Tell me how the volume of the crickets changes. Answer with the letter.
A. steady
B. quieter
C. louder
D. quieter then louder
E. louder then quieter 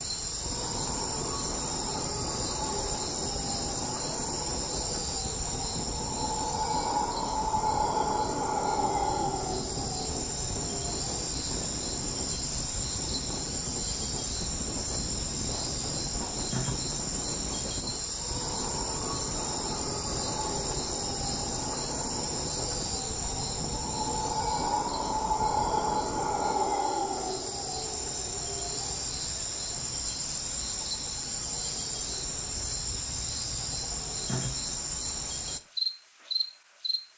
A.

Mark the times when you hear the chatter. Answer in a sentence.
The chatter can't be heard in this clip.